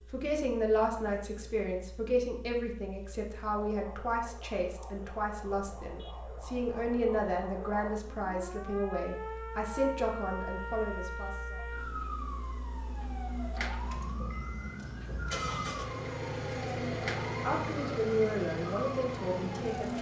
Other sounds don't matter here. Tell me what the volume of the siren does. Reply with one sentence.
The loudness of the siren goes up.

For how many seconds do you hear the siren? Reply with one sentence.
You can hear the siren for 16 seconds altogether.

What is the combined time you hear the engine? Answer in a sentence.
You can hear the engine for 20 seconds altogether.